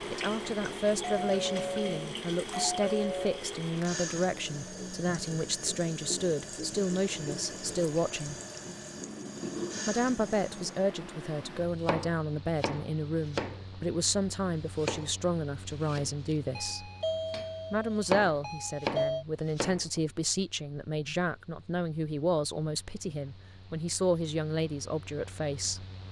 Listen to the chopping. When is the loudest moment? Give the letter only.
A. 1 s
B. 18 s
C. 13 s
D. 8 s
B.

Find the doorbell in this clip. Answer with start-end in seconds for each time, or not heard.
1.1-3.5, 16.6-19.2.